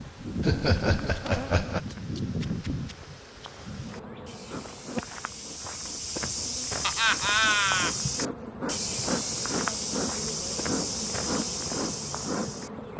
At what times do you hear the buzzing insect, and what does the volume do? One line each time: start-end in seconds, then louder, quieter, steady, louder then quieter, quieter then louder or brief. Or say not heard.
0.0-12.9 quieter then louder.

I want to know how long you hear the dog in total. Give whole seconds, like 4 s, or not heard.
not heard.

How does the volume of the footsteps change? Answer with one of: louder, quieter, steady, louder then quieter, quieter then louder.
louder.